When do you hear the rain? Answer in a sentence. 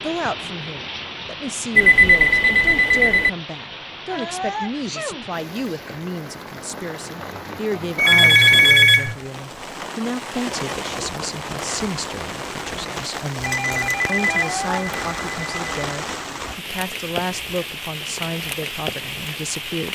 You can hear the rain from 0.0 to 19.9 s.